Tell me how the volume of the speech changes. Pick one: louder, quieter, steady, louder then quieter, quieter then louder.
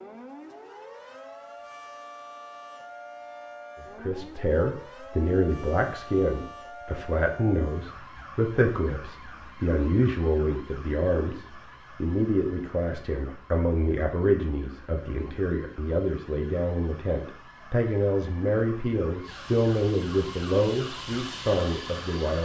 steady.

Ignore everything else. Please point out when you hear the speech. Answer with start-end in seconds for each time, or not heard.
4.0-22.4.